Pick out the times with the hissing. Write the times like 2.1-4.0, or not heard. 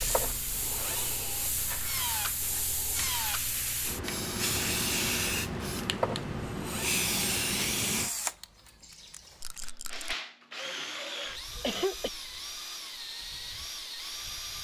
0.0-8.1.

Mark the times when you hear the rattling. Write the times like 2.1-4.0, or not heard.
1.6-2.7, 9.4-10.2.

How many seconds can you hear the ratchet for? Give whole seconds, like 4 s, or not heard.
not heard.